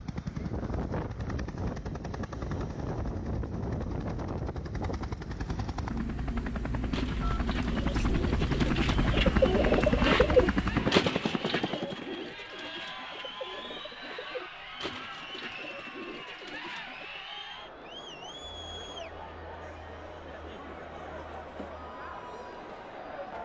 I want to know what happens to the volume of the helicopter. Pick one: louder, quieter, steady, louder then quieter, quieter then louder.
louder.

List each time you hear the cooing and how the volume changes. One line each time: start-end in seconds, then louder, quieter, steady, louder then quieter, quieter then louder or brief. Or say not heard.
6.9-17.1 louder then quieter.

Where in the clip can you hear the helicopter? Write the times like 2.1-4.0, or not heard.
0.0-12.2.